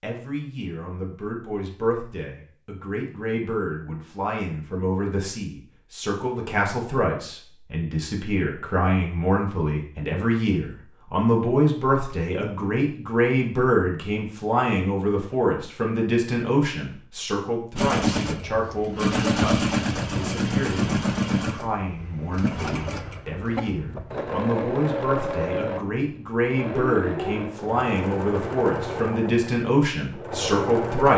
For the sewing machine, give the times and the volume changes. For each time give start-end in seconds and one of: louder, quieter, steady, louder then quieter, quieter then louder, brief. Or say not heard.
17.8-31.1 quieter.